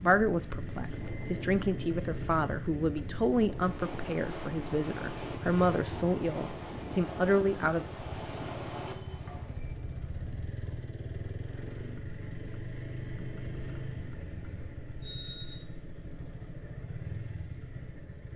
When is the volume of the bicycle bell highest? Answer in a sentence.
The volume of the bicycle bell peaks at 15 seconds.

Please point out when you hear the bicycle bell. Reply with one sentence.
You can hear the bicycle bell from 0.9 to 1.3 s, from 9.6 to 10.3 s and from 15.0 to 15.7 s.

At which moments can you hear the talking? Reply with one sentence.
You can hear the talking from 0.0 to 7.8 s.